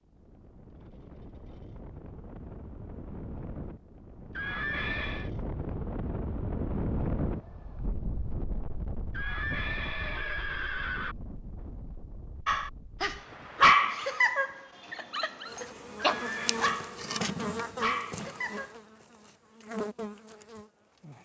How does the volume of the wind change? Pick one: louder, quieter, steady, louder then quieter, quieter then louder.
louder then quieter.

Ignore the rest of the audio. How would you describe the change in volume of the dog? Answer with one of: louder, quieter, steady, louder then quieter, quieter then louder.
quieter.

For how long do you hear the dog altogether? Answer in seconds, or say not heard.
6 s.